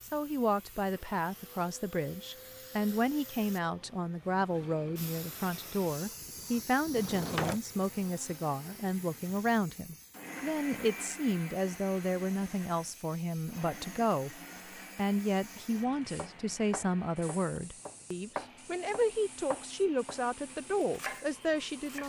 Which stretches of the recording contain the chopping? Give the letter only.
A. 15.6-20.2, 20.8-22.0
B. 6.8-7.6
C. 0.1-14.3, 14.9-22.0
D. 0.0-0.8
A.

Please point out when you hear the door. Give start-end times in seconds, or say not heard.
6.8-7.6.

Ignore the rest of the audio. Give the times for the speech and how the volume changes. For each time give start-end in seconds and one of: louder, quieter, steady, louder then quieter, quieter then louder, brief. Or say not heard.
0.1-14.3 steady
14.9-22.0 steady.